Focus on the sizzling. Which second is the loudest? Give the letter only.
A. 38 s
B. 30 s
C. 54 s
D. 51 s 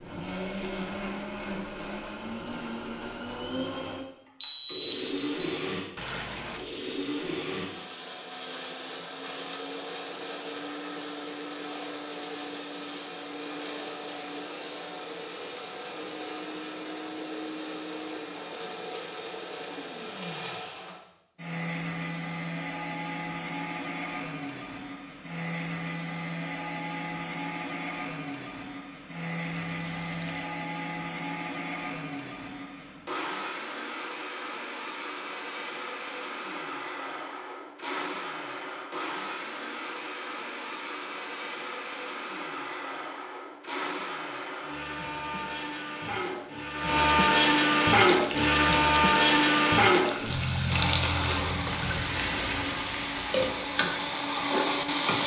D.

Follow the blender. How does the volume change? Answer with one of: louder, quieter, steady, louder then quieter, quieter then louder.
louder.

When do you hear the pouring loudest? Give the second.
51 s.